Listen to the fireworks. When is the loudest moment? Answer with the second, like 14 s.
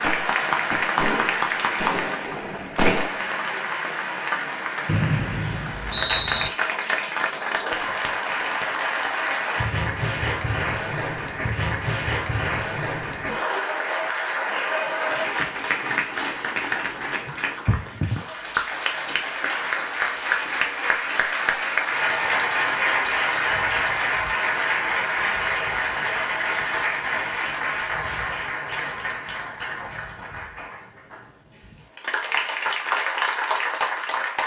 3 s.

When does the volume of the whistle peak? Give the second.
6 s.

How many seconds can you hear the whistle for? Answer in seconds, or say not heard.
2 s.